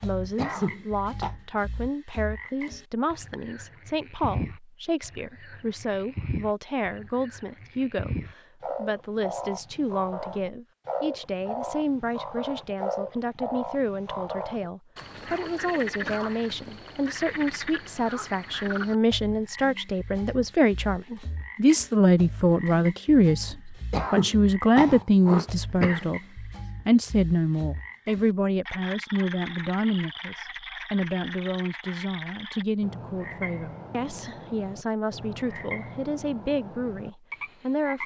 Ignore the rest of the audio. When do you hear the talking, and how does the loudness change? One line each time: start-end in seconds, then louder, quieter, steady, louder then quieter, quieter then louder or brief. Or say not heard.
0.0-38.0 louder then quieter.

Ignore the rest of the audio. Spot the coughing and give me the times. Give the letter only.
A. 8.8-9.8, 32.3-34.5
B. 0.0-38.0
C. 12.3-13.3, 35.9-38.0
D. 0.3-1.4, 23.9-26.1
D.